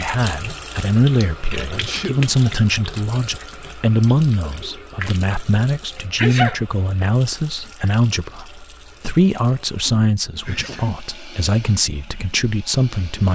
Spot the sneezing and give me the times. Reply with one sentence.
The sneezing can be heard from 1.7 to 2.2 s, from 6.2 to 6.6 s and from 10.4 to 11.0 s.